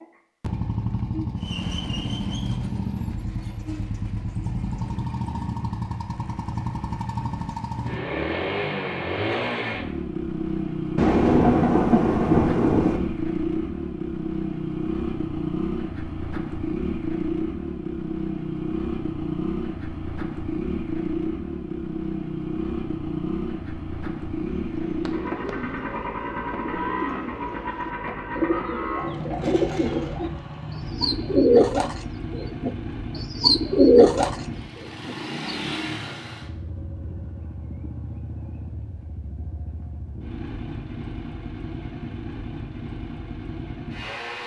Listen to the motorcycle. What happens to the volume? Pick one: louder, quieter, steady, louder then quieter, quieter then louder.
quieter.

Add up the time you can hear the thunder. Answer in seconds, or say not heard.
2 s.